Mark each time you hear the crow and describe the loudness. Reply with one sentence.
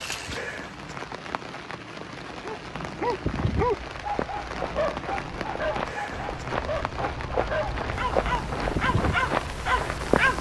You can't hear the crow here.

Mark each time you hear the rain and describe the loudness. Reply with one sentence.
The rain can be heard from 0.0 to 10.3 s, at a steady volume.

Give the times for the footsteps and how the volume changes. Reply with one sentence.
The footsteps can be heard from 3.2 to 10.3 s, getting louder.